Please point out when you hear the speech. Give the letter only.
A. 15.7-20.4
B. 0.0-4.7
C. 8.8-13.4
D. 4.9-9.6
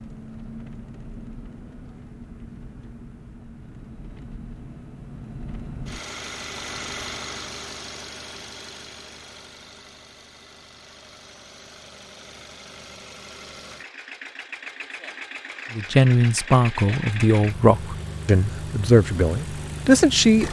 A.